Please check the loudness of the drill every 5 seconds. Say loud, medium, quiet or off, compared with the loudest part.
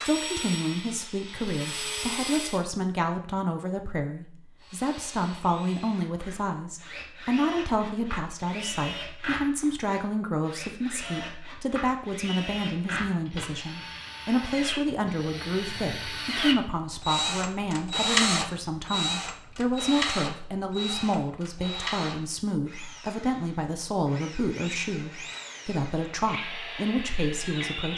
medium, medium, medium, loud, medium, medium.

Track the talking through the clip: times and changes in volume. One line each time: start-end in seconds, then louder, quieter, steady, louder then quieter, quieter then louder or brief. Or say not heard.
0.1-27.9 steady.